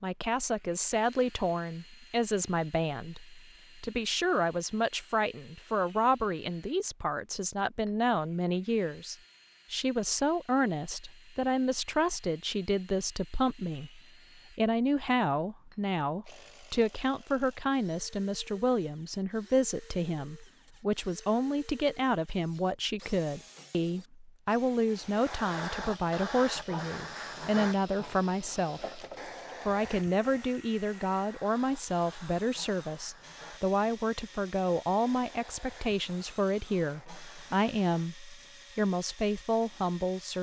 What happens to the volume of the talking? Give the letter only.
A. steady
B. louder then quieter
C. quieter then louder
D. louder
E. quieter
A.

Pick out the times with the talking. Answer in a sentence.
The talking can be heard from 0.0 to 29.0 s and from 29.6 to 40.3 s.